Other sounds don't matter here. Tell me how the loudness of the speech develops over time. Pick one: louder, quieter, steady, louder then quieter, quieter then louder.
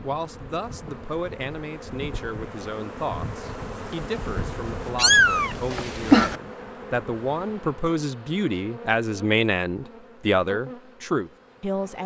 louder.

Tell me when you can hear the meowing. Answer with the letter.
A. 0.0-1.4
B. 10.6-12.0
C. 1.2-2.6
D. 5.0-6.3
D.